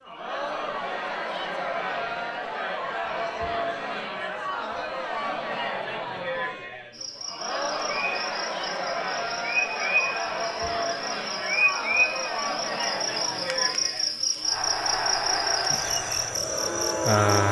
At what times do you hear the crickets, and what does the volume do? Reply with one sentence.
The crickets can be heard from 6.9 to 17.4 s, getting louder.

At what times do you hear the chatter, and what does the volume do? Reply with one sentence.
The chatter can be heard from 0.0 to 17.4 s, at a steady volume.